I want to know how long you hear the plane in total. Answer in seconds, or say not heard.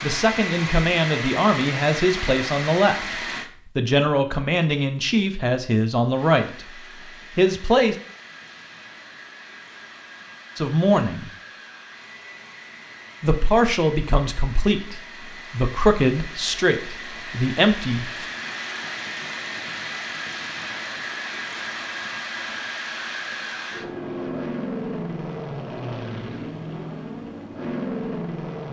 26 s.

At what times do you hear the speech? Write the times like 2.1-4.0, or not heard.
0.0-6.7, 7.3-8.0, 10.6-11.3, 13.2-18.2.